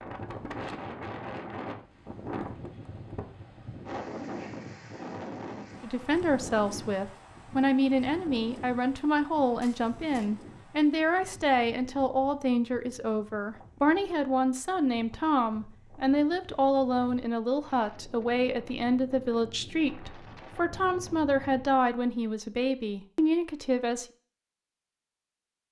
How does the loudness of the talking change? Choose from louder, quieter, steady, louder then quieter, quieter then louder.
steady.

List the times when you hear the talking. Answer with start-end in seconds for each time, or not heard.
5.8-24.1.